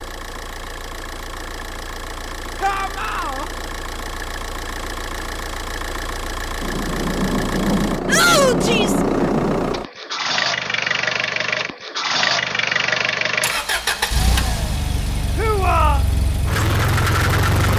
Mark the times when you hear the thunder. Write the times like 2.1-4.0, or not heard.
6.6-9.8.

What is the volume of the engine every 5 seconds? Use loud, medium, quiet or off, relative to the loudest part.
medium, medium, loud, loud.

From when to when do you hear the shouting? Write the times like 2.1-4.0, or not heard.
2.6-3.5, 8.1-9.0, 15.3-16.0.